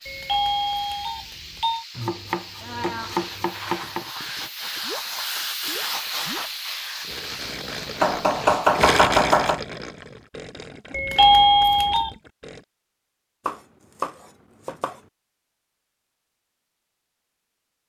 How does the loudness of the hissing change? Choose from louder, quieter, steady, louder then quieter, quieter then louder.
louder then quieter.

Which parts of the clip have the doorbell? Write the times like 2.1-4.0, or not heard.
0.1-1.9, 10.9-12.1.